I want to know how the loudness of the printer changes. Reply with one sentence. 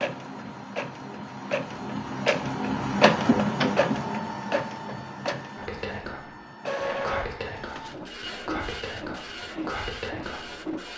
The volume of the printer goes up, then down.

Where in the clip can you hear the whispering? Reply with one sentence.
You can hear the whispering from 5.5 to 10.6 s.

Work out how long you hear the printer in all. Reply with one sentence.
You can hear the printer for 11 seconds altogether.